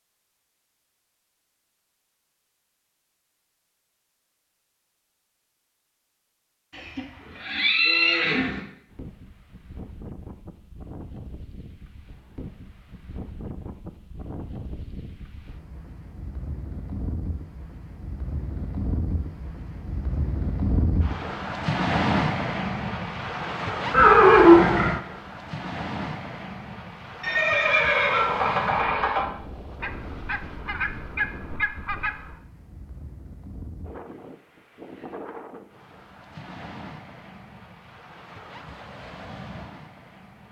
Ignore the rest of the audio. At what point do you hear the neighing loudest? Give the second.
24 s.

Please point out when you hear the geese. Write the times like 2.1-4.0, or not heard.
29.8-32.4.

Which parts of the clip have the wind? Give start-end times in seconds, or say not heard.
8.8-40.4.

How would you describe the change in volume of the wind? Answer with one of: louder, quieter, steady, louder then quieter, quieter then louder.
louder then quieter.